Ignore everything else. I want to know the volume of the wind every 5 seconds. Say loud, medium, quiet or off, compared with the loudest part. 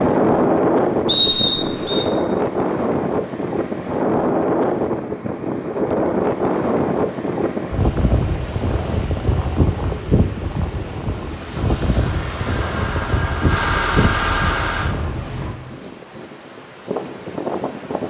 loud, loud, medium, medium.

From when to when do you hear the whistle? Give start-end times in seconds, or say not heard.
1.1-2.0.